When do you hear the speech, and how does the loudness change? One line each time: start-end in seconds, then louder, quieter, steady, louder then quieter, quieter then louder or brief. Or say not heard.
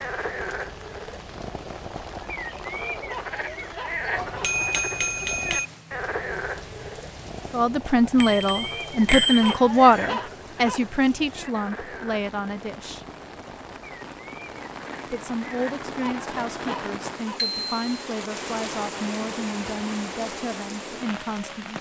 7.5-13.1 quieter
15.1-21.7 steady.